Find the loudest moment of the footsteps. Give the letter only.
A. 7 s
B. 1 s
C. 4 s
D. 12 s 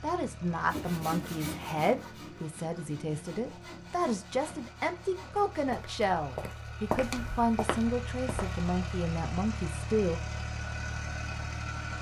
A.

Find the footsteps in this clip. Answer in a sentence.
The footsteps can be heard from 5.7 to 8.6 s.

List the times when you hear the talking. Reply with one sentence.
The talking can be heard from 0.0 to 10.2 s.